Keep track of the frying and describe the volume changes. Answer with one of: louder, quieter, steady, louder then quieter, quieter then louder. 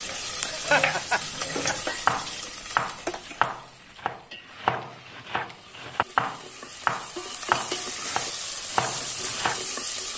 quieter then louder.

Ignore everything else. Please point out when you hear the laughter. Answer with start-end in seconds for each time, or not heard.
0.5-1.9.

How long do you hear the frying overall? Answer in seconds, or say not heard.
10 s.